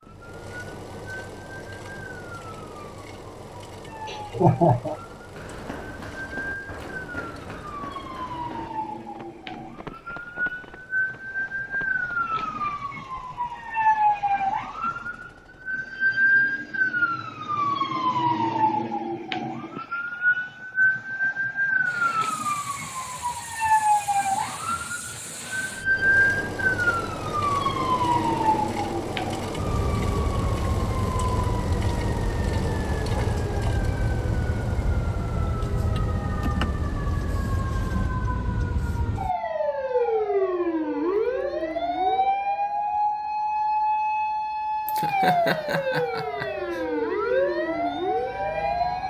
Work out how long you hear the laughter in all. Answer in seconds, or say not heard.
3 s.